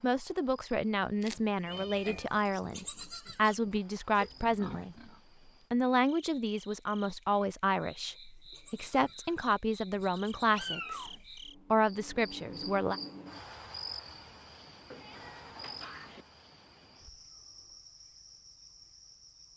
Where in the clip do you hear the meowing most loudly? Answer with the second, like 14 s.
11 s.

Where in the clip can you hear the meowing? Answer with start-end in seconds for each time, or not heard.
1.2-2.3, 10.5-11.2, 14.9-16.2.